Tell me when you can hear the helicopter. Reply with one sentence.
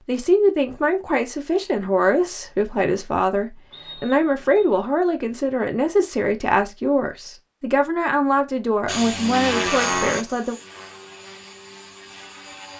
The helicopter can be heard from 8.8 to 12.7 s.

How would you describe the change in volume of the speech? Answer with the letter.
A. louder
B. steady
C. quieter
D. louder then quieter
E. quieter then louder
B.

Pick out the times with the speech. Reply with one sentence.
The speech can be heard from 0.1 to 10.6 s.